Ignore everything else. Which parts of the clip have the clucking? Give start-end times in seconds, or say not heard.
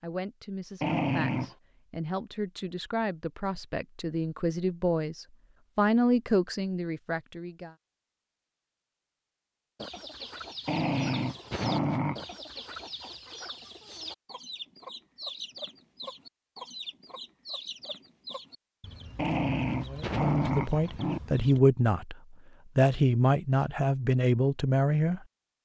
9.8-21.6.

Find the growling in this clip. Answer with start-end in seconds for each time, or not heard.
0.8-1.6, 10.7-12.2, 19.1-21.2.